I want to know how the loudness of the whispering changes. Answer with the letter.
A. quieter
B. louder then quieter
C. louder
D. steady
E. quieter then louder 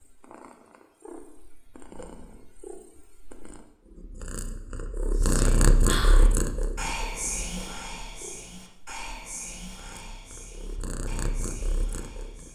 A.